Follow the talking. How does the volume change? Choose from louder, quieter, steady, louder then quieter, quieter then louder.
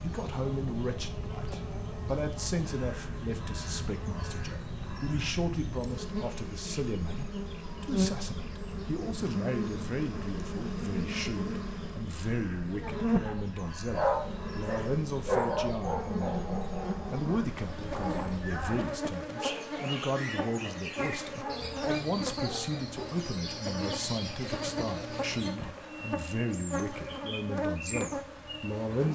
steady.